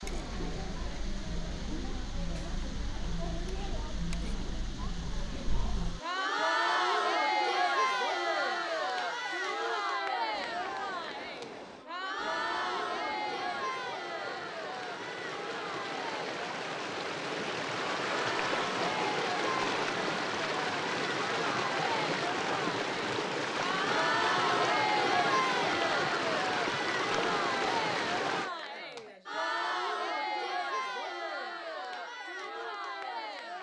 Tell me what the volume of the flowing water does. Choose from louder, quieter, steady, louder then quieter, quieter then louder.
louder.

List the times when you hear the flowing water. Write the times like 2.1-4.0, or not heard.
0.0-28.5.